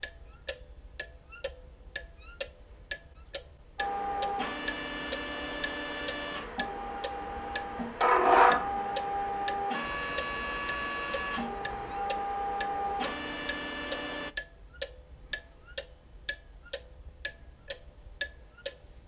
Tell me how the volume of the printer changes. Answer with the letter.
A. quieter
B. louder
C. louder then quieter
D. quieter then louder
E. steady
C.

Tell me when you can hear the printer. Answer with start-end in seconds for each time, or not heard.
3.8-14.3.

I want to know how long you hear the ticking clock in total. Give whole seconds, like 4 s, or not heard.
19 s.